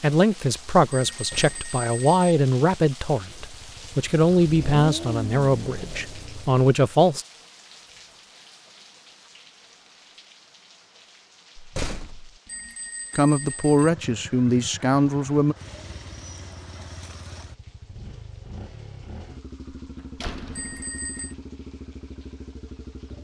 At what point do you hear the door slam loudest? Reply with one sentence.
The volume of the door slam peaks at 12 seconds.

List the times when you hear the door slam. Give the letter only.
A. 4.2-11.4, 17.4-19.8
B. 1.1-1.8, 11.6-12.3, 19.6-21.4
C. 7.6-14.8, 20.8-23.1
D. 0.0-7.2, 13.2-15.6
B.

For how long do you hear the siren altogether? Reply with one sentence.
The siren can't be heard in this clip.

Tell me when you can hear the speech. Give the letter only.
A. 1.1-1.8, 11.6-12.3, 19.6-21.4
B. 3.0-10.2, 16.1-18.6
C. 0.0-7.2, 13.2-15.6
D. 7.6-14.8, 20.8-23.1
C.